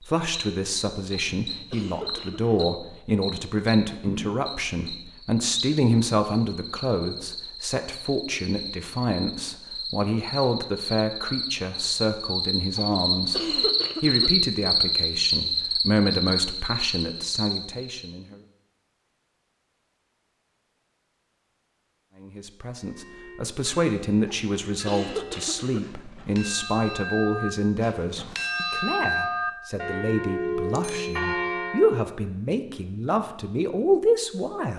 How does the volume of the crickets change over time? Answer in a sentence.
The volume of the crickets goes up.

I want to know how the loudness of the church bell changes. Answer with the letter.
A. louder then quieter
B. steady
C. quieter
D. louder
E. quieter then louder
D.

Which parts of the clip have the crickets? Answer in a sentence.
The crickets can be heard from 0.0 to 18.1 s.